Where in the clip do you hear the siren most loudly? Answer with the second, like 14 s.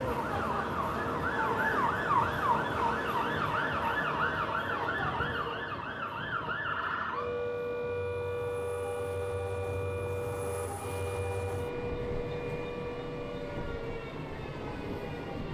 2 s.